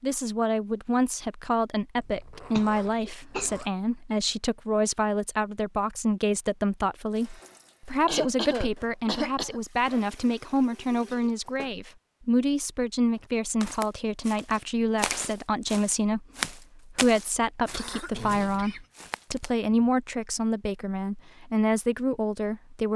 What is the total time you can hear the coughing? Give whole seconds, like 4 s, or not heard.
4 s.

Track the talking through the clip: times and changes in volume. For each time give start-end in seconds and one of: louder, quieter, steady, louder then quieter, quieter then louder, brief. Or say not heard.
0.0-22.9 steady.